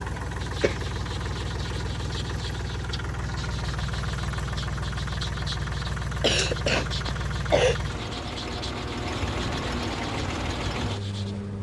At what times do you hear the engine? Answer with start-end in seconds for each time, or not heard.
0.0-11.5.